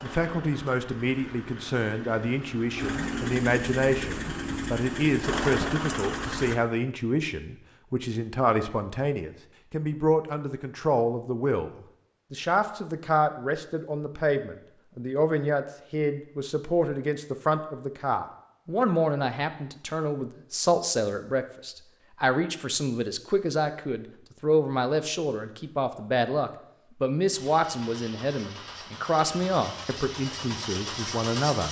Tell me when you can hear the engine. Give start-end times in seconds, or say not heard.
0.0-6.6, 27.3-31.6.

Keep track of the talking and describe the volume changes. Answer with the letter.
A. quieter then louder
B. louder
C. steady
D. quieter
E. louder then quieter
C.